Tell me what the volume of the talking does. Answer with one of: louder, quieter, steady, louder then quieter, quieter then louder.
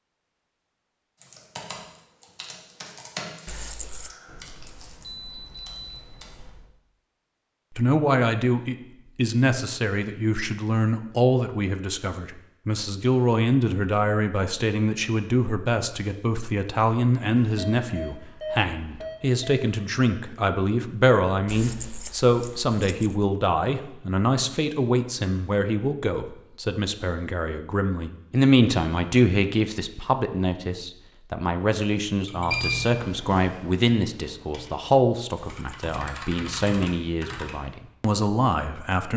steady.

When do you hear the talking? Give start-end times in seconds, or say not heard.
7.7-39.1.